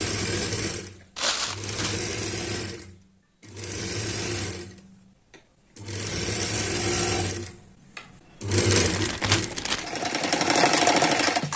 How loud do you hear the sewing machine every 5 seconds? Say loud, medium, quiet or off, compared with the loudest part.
medium, medium, loud.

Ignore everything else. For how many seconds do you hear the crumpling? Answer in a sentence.
You can hear the crumpling for 2 seconds altogether.